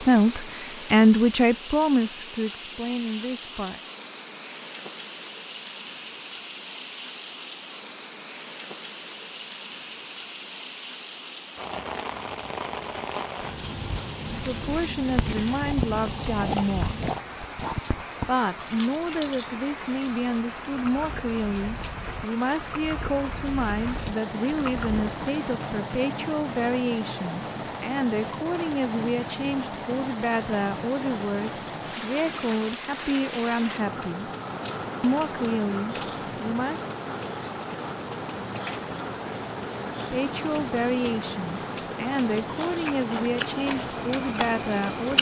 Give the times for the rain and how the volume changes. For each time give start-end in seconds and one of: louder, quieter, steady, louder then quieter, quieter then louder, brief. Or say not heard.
0.0-45.1 steady.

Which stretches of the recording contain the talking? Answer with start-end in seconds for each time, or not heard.
0.0-3.8, 14.3-17.0, 18.2-34.3, 35.0-36.8, 40.0-45.1.